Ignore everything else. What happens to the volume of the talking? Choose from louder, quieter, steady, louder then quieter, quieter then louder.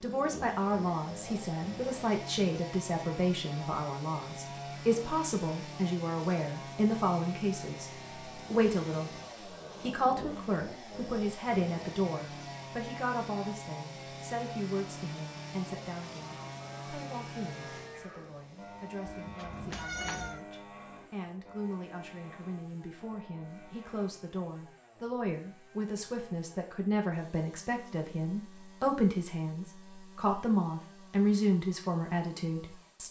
quieter then louder.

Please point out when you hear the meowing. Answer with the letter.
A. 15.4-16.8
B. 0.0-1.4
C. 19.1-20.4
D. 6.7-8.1
C.